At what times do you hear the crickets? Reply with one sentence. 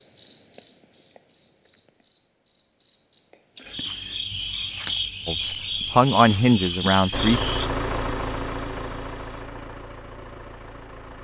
You can hear the crickets from 0.0 to 7.7 s.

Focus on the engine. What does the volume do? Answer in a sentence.
The volume of the engine goes down.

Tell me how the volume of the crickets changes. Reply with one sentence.
The loudness of the crickets goes down, then up.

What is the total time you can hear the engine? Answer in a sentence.
The engine can be heard for 4 seconds in total.